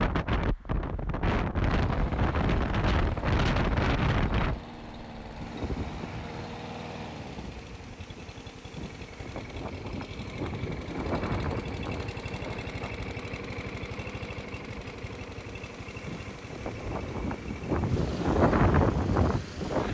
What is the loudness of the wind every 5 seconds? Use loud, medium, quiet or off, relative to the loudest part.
loud, quiet, medium, loud.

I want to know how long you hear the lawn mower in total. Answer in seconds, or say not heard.
18 s.